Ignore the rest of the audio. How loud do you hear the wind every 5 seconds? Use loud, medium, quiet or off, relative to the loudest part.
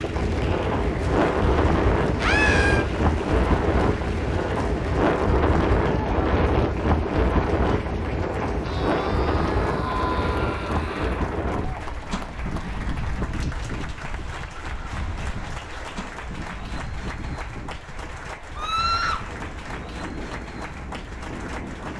loud, loud, medium, quiet, quiet.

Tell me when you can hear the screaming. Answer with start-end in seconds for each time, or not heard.
2.1-2.9, 8.6-11.2, 18.6-19.2.